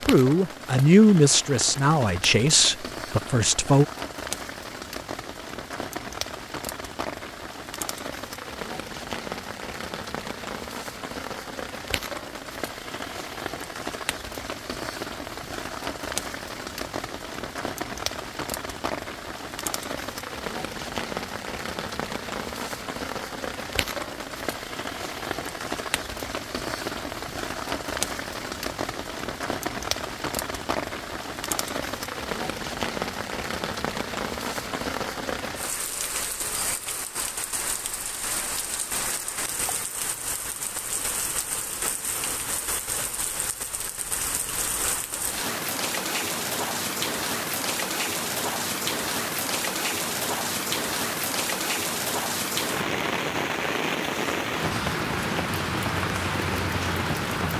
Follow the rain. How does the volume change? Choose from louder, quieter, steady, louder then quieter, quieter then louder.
louder.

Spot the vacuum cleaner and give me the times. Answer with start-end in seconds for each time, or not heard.
not heard.